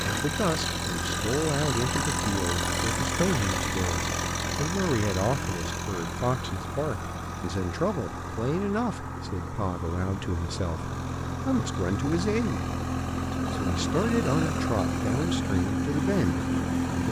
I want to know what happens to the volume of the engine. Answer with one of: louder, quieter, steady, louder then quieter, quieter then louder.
quieter then louder.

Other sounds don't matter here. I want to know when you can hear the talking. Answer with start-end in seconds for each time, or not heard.
0.1-12.7, 13.5-17.0.